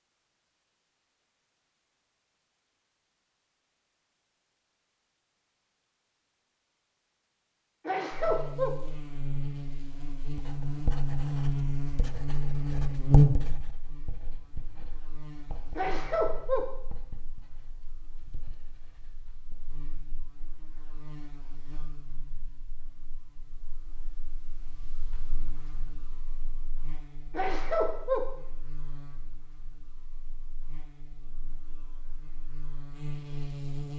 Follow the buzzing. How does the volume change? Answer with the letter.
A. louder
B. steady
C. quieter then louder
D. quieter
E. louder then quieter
C.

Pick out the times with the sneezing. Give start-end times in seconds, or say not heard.
7.8-8.8, 15.8-16.7, 27.3-28.3.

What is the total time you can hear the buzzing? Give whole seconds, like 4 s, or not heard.
26 s.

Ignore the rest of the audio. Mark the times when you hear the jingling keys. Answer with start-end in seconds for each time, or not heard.
not heard.